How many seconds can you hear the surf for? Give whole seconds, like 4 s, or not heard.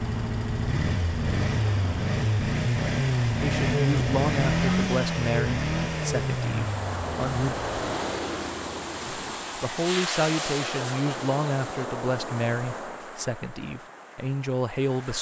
15 s.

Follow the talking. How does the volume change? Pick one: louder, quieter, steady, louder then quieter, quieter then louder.
steady.